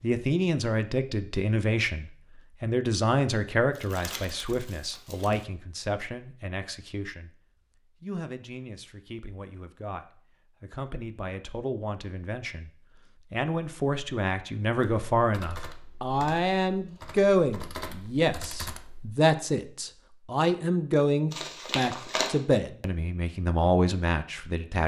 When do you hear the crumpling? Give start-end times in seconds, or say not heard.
3.8-5.5, 21.3-22.4.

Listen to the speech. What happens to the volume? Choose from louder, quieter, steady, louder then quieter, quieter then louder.
quieter then louder.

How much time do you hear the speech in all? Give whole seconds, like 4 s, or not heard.
24 s.